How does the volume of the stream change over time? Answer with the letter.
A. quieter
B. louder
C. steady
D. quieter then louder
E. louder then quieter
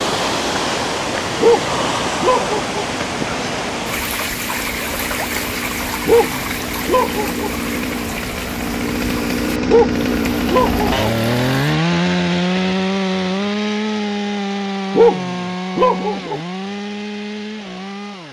A.